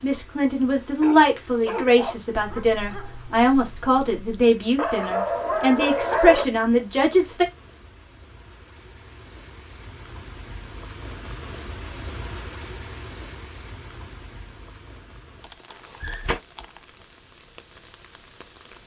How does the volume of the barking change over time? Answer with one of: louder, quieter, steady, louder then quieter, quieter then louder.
quieter then louder.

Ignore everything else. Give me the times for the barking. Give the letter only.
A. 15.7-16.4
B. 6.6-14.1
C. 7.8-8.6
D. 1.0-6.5
D.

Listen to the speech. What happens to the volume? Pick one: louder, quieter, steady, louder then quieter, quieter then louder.
steady.